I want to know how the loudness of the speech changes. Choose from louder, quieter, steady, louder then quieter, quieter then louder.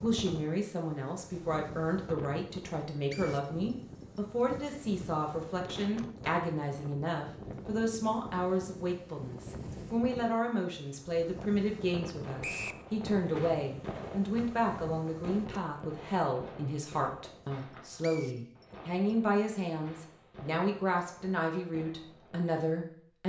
steady.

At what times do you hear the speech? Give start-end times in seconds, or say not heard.
0.0-23.2.